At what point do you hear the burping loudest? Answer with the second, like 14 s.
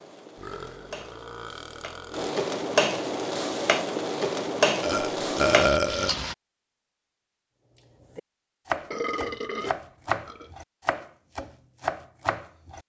6 s.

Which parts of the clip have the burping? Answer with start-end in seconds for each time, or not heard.
0.3-2.3, 4.8-6.2, 8.7-10.5.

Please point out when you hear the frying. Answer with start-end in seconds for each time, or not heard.
0.0-6.3.